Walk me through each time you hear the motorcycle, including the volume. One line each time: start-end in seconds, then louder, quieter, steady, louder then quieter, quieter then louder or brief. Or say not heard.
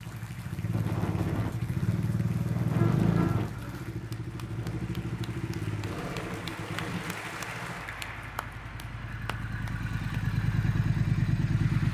0.0-11.8 quieter then louder.